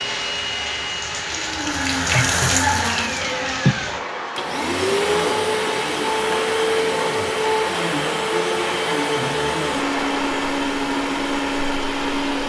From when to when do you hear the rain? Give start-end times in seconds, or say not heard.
0.0-10.2.